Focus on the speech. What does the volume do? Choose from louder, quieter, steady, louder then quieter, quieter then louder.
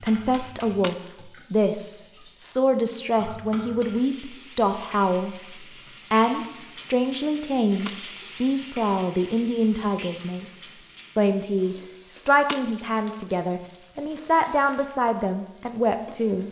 steady.